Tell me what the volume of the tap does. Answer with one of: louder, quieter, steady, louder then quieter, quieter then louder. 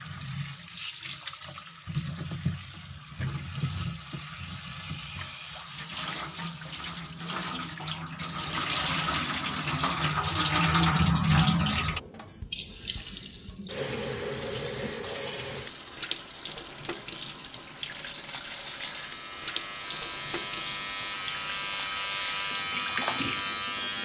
louder then quieter.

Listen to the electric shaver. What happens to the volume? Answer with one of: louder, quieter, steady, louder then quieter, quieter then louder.
louder.